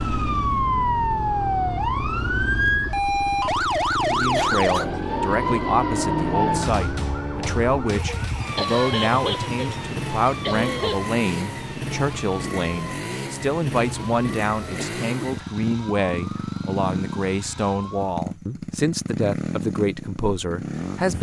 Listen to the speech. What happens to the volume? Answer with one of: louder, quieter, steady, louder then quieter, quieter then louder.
steady.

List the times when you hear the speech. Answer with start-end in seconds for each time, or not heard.
4.1-21.1.